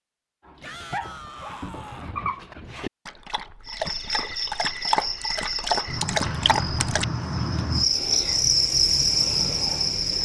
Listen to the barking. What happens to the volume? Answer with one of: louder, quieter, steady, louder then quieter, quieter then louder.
louder.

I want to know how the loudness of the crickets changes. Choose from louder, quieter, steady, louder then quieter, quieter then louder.
louder.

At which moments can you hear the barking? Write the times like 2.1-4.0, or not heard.
0.5-7.0.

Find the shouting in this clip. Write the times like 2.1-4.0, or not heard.
0.6-2.1.